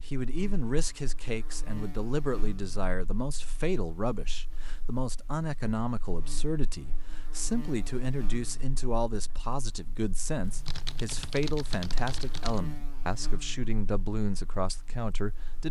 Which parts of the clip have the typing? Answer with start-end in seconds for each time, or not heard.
10.4-12.6.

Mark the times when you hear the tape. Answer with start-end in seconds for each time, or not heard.
not heard.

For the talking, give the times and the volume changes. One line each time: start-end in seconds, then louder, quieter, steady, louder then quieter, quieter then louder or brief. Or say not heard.
0.1-15.6 steady.